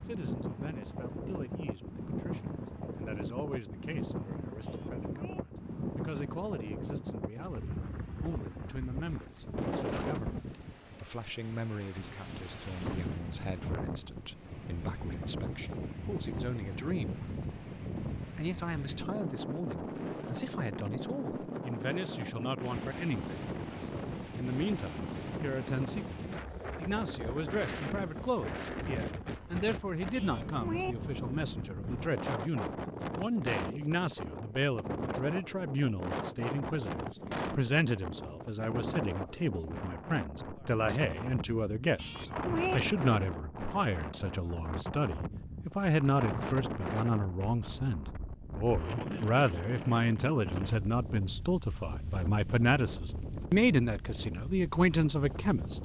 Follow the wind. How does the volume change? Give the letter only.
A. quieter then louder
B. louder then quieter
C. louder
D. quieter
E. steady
E.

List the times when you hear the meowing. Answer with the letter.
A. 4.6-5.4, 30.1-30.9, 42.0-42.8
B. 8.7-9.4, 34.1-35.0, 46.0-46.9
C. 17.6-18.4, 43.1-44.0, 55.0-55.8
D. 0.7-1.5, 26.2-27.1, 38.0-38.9
A.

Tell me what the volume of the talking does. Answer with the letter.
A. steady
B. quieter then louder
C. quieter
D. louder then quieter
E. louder
E.